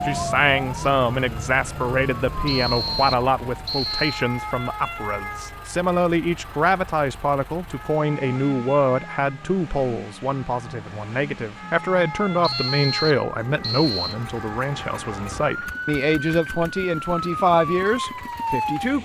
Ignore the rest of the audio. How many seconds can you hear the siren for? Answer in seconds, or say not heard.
19 s.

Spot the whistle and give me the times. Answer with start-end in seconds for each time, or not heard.
2.5-4.2, 12.4-14.2.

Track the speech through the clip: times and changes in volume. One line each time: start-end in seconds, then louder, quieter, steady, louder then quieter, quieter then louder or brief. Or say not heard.
0.0-19.0 steady.